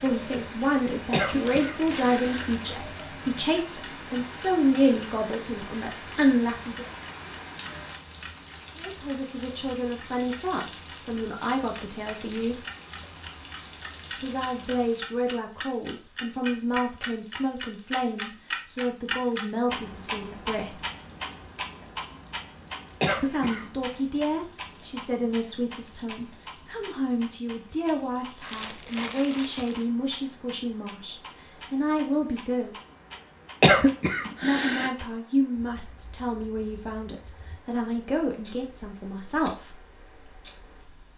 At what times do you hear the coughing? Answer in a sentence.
The coughing can be heard from 1.1 to 2.8 s, from 23.0 to 23.7 s and from 33.6 to 34.9 s.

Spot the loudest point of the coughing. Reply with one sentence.
The volume of the coughing peaks at 34 seconds.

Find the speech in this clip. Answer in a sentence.
The speech can be heard from 0.0 to 6.9 s, from 8.8 to 12.7 s, from 14.2 to 20.8 s, from 23.2 to 32.8 s and from 34.4 to 39.8 s.